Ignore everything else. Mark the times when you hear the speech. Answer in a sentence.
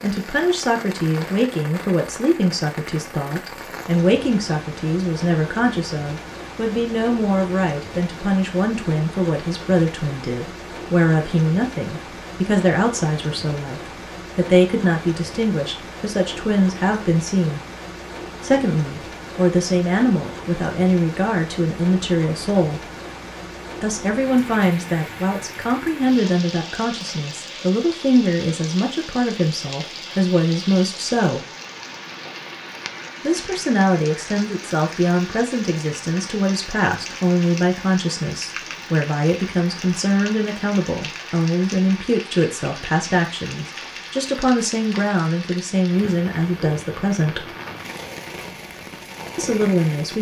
The speech can be heard from 0.0 to 17.6 s, from 18.4 to 22.9 s, from 23.8 to 31.4 s, from 33.2 to 47.5 s and from 49.4 to 50.1 s.